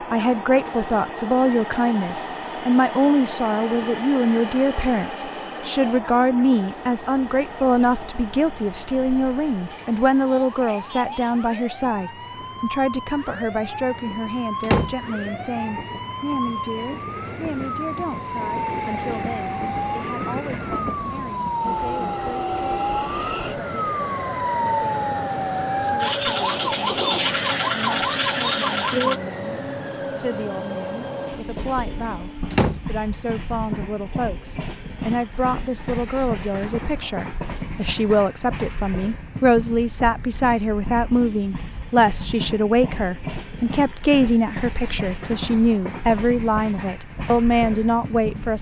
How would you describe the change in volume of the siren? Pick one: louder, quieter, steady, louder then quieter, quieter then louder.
louder.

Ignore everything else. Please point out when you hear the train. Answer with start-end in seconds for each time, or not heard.
0.0-48.5.